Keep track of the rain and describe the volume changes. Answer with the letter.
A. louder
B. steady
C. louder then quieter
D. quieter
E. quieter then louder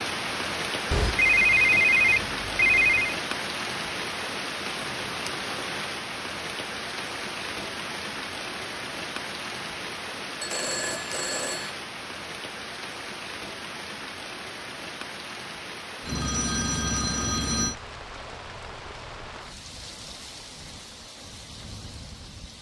D.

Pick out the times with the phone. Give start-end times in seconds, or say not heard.
0.9-3.1, 10.4-11.7, 16.1-17.8.